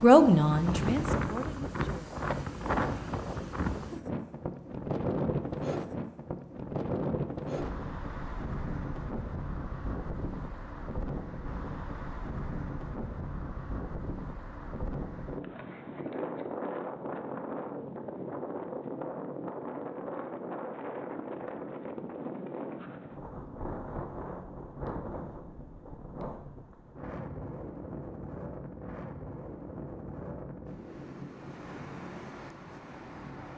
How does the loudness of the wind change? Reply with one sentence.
The loudness of the wind goes down.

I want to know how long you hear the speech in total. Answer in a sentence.
You can hear the speech for 2 seconds altogether.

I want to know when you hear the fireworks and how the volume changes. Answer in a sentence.
You can't hear the fireworks here.